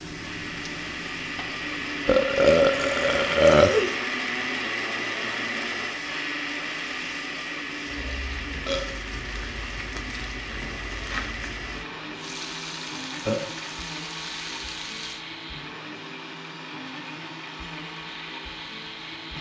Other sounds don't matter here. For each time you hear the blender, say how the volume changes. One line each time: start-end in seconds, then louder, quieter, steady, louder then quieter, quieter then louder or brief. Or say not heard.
0.0-19.3 quieter.